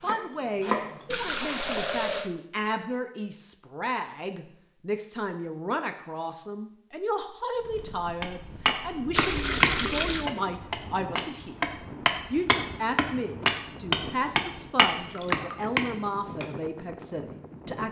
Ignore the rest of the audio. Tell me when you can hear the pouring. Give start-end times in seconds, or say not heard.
1.1-2.3, 9.2-10.3, 14.9-15.8.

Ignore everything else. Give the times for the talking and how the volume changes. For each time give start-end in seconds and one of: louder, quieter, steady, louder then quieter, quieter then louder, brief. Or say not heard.
0.0-17.8 steady.